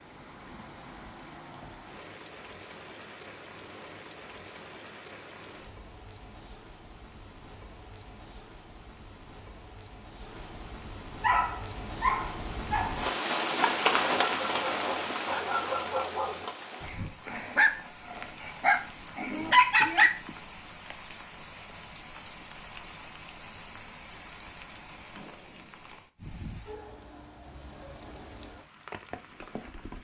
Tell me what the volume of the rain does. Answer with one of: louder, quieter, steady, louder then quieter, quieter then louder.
louder then quieter.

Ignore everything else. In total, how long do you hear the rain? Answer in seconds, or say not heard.
30 s.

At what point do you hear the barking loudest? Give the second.
20 s.